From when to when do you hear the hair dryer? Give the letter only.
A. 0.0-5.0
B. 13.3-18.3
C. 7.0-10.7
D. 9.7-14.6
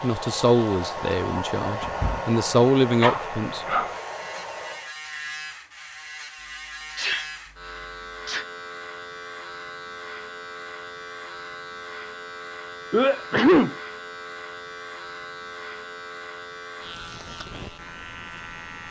A.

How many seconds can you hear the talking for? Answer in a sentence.
You can hear the talking for 4 seconds altogether.